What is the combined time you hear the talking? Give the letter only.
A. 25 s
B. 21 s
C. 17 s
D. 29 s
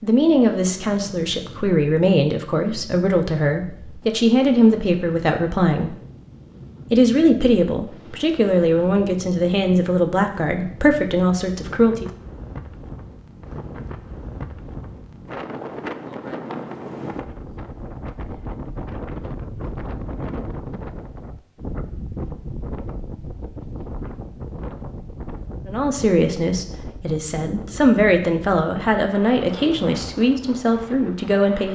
C.